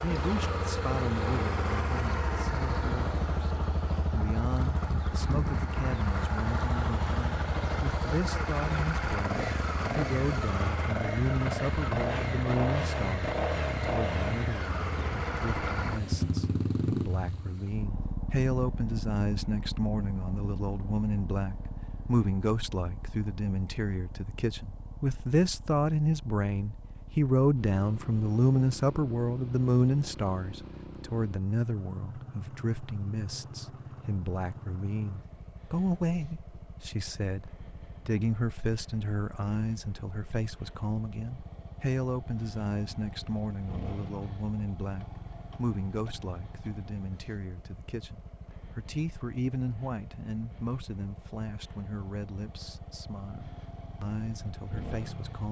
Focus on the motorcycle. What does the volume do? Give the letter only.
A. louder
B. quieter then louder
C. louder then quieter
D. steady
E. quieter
E.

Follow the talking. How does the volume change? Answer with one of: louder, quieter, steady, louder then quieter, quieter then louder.
louder then quieter.